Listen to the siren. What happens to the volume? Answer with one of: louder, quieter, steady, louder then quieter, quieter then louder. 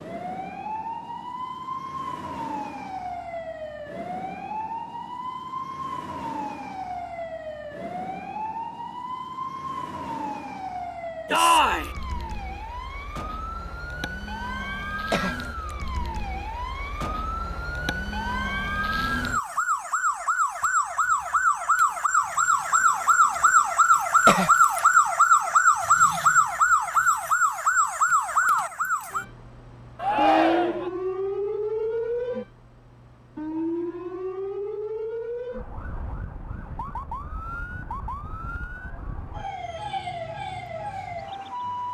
louder then quieter.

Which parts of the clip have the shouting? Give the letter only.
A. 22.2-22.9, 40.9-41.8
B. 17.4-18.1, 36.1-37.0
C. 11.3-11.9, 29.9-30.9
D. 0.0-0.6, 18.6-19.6
C.